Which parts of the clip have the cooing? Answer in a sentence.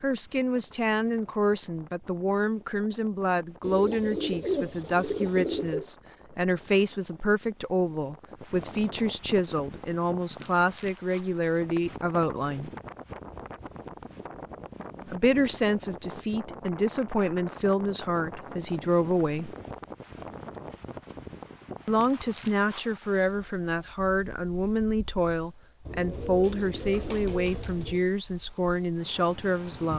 The cooing can be heard from 3.6 to 5.8 s and from 25.9 to 28.1 s.